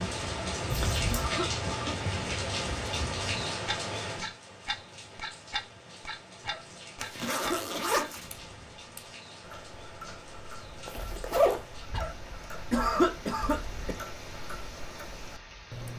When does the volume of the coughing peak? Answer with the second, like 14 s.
13 s.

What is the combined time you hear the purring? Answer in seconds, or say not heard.
not heard.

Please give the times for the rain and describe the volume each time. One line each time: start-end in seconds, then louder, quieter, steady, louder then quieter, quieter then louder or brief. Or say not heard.
0.0-15.9 quieter.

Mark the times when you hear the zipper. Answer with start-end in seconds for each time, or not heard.
0.7-1.3, 7.0-8.2, 10.8-11.7.